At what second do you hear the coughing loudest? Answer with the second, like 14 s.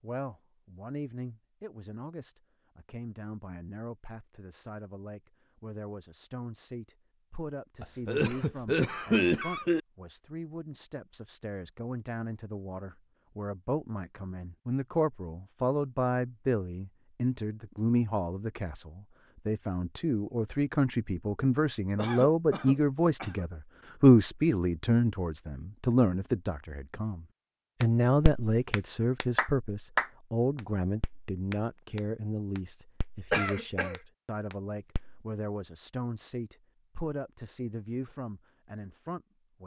9 s.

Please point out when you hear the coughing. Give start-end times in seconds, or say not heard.
7.8-9.8, 21.9-23.4, 33.3-34.0.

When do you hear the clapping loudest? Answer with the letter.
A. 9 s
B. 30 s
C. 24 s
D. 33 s
B.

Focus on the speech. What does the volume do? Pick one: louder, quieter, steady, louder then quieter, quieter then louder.
louder then quieter.